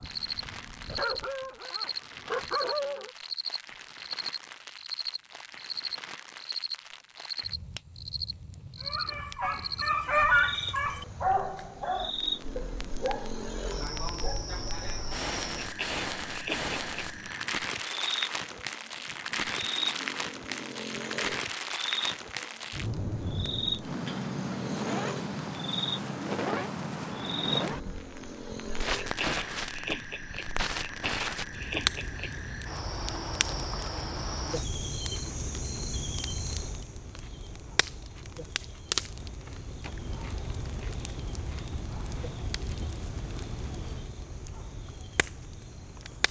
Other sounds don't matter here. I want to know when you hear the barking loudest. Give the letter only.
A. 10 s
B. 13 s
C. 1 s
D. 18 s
A.